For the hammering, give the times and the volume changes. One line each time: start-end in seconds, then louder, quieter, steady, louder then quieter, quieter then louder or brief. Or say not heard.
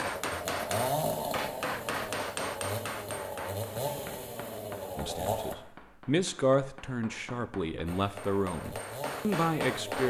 0.0-10.0 quieter then louder.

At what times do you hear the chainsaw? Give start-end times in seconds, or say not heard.
0.0-5.5, 7.8-10.0.